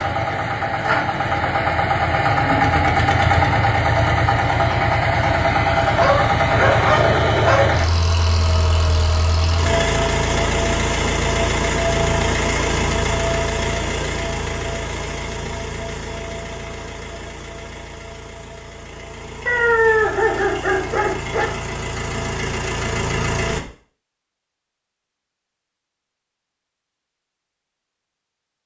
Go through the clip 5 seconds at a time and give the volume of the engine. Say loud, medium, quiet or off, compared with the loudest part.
loud, loud, loud, quiet, medium, off.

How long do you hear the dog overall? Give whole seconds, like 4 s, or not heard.
4 s.